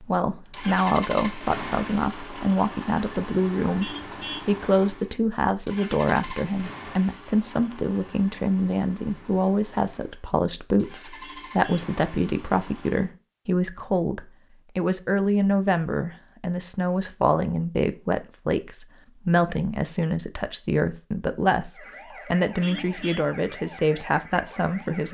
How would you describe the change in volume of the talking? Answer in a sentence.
The volume of the talking stays about the same.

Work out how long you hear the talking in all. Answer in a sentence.
The talking can be heard for 25 seconds in total.